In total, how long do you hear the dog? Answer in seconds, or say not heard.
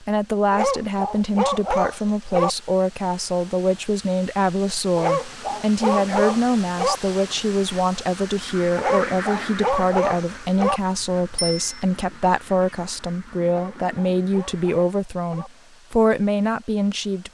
8 s.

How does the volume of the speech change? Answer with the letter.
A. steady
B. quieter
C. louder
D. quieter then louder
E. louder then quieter
A.